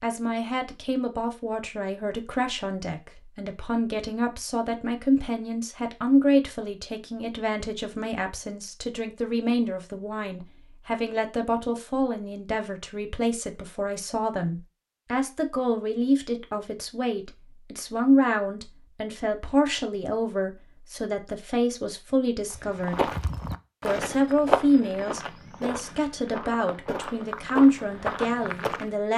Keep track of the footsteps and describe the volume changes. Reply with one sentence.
The volume of the footsteps goes down, then up.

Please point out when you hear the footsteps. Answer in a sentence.
You can hear the footsteps from 22.5 to 28.9 s.